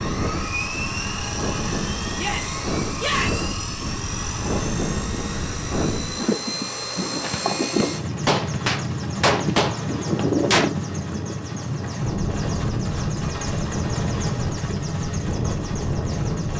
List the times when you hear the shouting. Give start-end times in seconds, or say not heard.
2.1-3.5.